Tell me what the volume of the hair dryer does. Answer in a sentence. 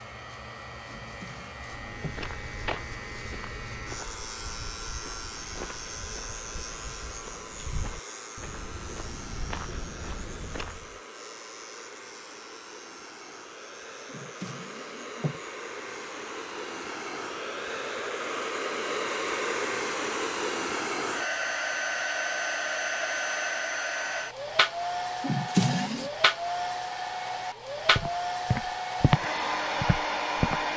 The volume of the hair dryer goes up.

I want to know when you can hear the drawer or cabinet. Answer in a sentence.
The drawer or cabinet can be heard from 0.9 to 2.2 s, from 14.1 to 15.4 s and from 25.2 to 26.1 s.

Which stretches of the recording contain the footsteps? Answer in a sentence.
You can hear the footsteps from 1.6 to 10.9 s and from 27.9 to 30.6 s.